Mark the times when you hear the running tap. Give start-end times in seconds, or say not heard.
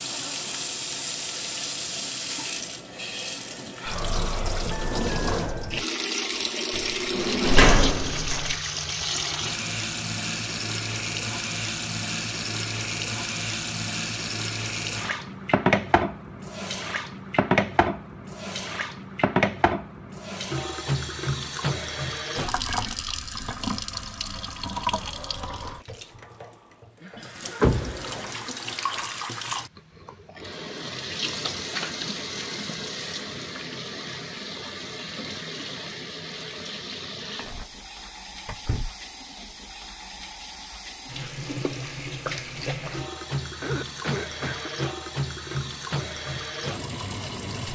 0.0-47.7.